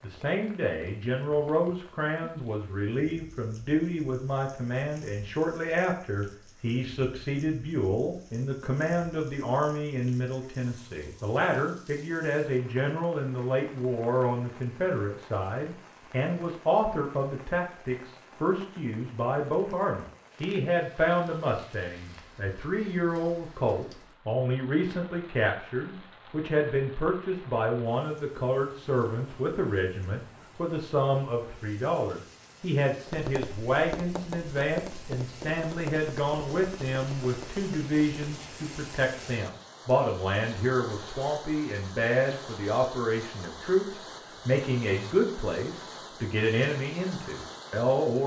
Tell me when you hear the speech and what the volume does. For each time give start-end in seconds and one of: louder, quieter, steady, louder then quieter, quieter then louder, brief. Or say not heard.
0.0-48.2 steady.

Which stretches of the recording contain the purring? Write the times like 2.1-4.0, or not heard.
not heard.